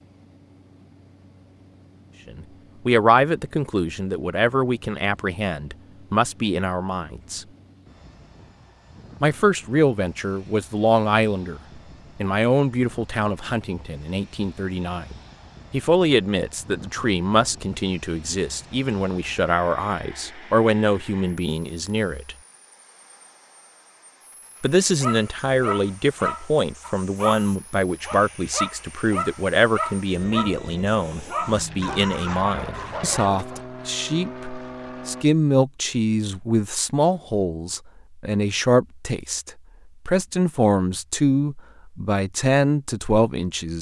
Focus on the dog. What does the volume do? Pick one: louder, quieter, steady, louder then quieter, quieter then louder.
steady.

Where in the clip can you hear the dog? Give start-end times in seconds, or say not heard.
24.8-33.6.